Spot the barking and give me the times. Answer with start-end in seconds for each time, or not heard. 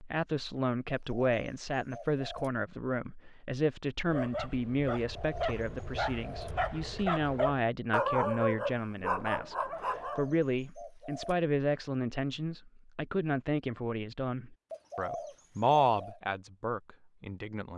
4.0-10.3.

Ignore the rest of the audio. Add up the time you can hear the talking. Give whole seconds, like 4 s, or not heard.
18 s.